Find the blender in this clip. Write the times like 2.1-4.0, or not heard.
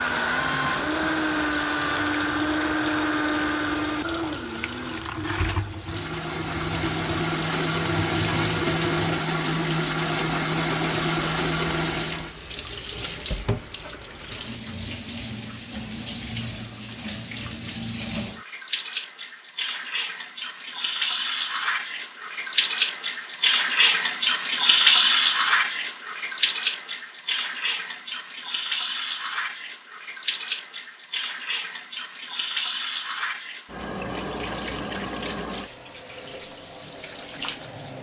0.0-12.3.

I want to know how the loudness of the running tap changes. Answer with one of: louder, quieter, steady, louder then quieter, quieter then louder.
louder then quieter.